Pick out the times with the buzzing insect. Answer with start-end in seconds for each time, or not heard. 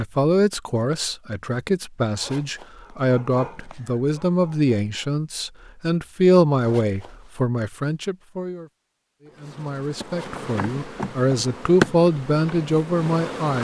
9.3-13.5.